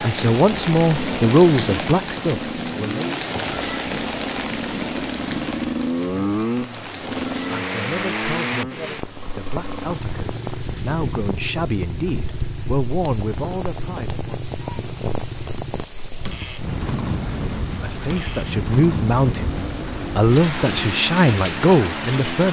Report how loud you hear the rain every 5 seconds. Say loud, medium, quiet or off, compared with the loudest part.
loud, loud, medium, loud, loud.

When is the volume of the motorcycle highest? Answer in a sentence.
The volume of the motorcycle peaks at 6 seconds.